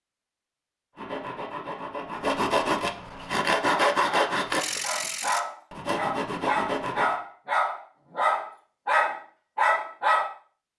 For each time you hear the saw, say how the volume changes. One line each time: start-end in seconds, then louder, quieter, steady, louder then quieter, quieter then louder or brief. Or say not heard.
0.9-7.2 louder then quieter.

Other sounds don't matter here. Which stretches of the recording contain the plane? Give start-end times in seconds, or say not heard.
not heard.